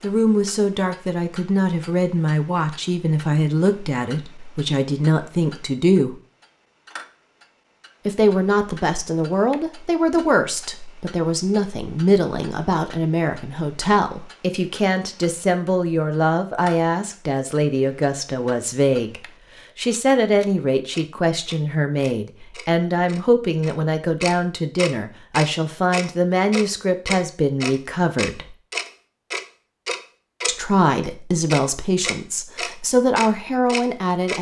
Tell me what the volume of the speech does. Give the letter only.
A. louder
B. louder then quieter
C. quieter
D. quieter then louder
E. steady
E.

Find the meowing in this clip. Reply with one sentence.
The meowing can't be heard in this clip.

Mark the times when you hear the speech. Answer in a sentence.
You can hear the speech from 0.0 to 6.2 s, from 8.1 to 28.6 s and from 30.4 to 34.3 s.